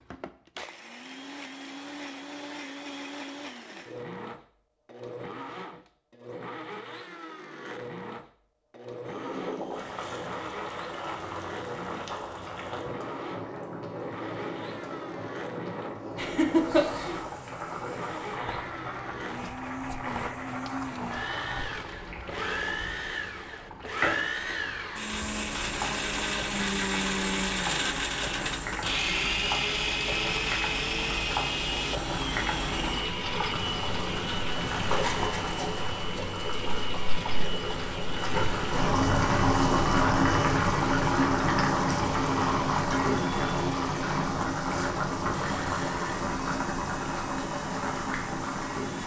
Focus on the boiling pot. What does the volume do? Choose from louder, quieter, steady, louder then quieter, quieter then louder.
louder.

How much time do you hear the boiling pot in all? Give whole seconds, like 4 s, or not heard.
40 s.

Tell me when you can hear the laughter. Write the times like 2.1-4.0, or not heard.
16.1-17.2.